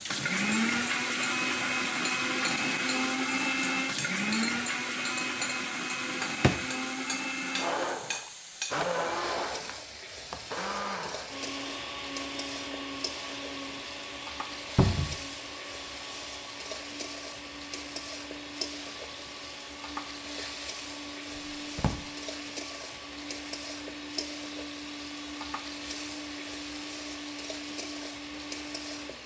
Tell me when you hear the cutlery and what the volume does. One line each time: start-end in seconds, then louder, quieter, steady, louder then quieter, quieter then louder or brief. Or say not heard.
not heard.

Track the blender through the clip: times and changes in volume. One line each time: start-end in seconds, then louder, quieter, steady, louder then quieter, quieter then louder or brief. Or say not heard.
0.1-29.2 quieter.